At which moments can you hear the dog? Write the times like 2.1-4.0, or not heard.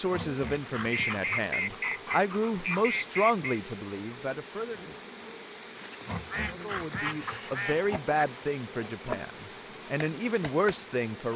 0.1-2.9, 6.0-7.6.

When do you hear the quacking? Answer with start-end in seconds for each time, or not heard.
0.8-3.6, 6.2-8.2.